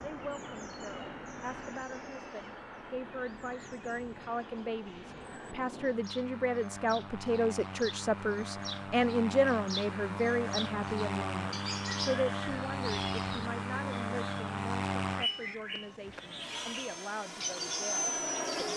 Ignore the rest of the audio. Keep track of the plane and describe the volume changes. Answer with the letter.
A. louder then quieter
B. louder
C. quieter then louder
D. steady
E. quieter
B.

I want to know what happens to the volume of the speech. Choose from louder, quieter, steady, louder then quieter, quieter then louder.
louder then quieter.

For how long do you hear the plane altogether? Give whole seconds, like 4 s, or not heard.
19 s.